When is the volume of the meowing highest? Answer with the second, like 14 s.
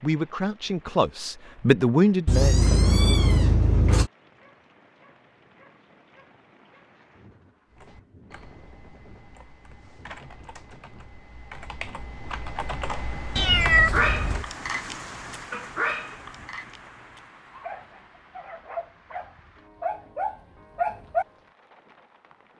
14 s.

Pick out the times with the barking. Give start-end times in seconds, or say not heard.
13.9-21.2.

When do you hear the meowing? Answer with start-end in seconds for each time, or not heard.
2.2-4.1, 13.3-14.4.